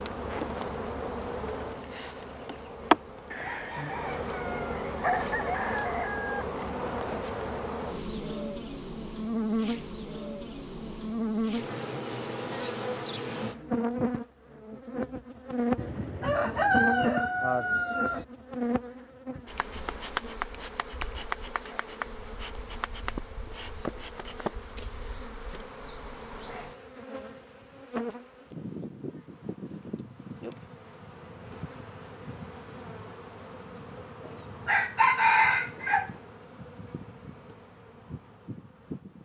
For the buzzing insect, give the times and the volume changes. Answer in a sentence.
The buzzing insect can be heard from 0.0 to 39.2 s, getting quieter.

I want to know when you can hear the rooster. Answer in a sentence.
You can hear the rooster from 3.3 to 6.5 s, from 15.8 to 18.2 s and from 34.2 to 36.1 s.